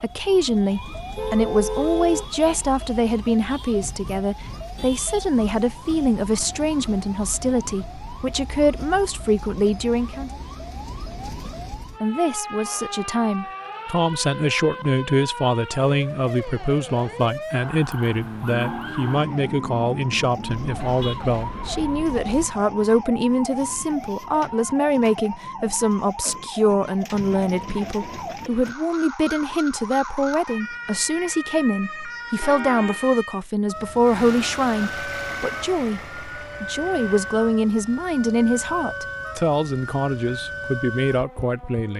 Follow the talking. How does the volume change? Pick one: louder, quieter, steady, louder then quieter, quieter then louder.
steady.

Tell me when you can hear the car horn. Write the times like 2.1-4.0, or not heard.
1.1-2.3, 20.4-22.5, 32.4-33.0.